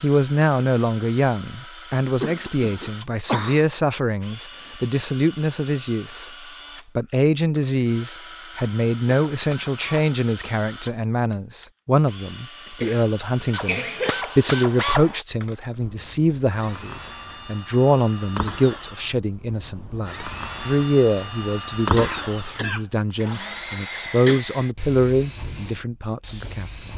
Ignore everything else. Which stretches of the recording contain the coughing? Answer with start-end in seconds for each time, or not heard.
2.2-3.6, 12.7-14.2, 21.9-24.4.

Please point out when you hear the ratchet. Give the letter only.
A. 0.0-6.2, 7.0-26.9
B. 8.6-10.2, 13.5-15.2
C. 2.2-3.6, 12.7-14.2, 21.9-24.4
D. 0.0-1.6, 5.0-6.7
B.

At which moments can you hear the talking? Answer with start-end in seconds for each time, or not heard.
0.0-6.2, 7.0-26.9.